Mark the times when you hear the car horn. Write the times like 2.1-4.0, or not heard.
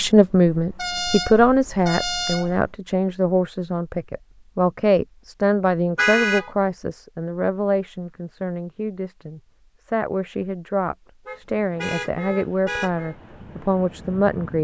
0.8-2.5, 6.0-6.5, 11.2-13.2.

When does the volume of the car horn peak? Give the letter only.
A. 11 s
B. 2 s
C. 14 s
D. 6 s
D.